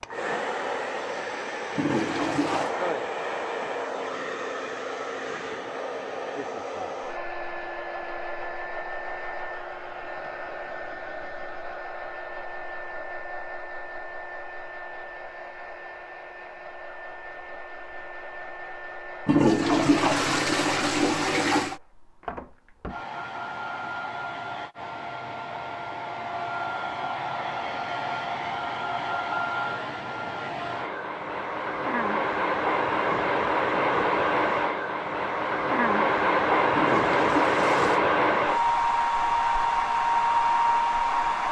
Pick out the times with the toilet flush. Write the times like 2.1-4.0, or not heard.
1.8-2.7, 19.2-21.8, 36.7-38.0.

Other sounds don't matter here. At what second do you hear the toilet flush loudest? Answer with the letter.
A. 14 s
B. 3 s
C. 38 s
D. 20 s
D.